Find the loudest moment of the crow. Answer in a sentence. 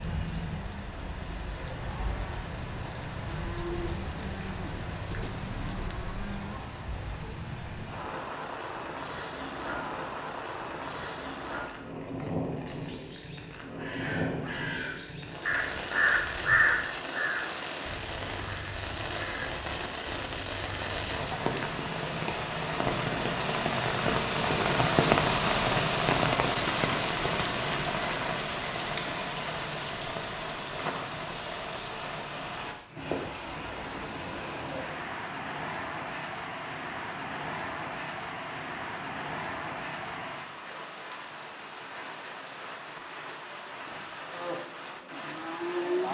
The volume of the crow peaks at 17 seconds.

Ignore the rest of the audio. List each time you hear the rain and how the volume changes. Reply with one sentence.
You can hear the rain from 0.0 to 46.1 s, getting louder then quieter.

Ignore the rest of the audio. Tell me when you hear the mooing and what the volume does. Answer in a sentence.
The mooing can be heard from 0.0 to 6.7 s, getting louder; and briefly from 44.3 to 46.1 s.